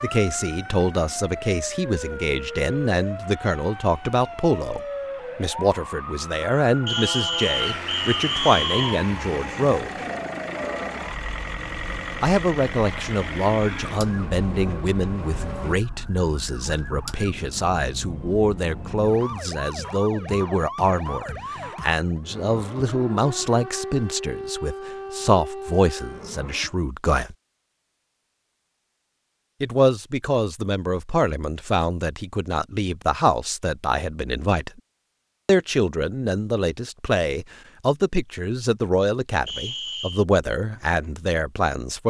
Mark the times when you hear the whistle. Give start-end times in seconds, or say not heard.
6.8-9.0, 39.5-40.2.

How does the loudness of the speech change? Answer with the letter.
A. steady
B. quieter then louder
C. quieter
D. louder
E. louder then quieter
A.